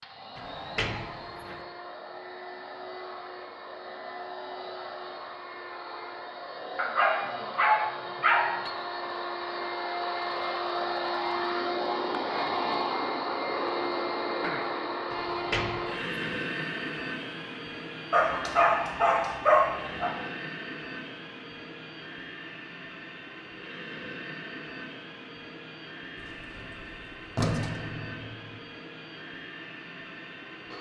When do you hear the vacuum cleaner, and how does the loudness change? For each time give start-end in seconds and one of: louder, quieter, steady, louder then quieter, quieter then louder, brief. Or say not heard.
0.0-30.7 louder then quieter.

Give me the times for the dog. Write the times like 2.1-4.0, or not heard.
6.8-8.6, 18.1-20.1.